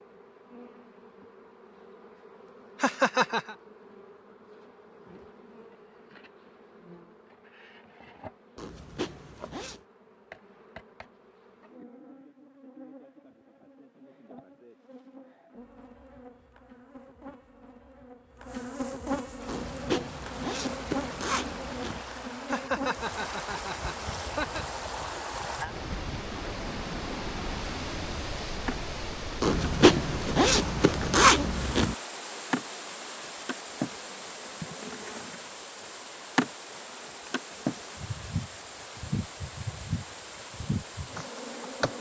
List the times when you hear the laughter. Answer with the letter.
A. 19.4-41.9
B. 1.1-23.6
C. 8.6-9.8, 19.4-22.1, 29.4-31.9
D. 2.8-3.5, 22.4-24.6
D.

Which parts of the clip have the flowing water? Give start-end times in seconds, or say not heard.
19.4-41.9.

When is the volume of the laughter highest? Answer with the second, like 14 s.
3 s.